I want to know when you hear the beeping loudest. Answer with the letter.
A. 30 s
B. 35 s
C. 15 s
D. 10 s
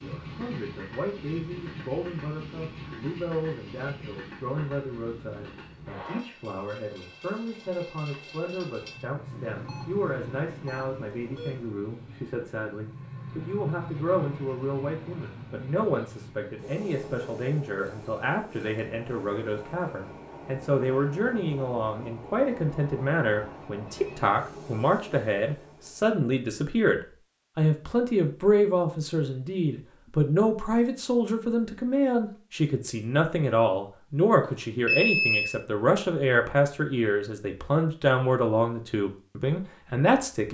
B.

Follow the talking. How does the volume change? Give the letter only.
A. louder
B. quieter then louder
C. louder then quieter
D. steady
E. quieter
A.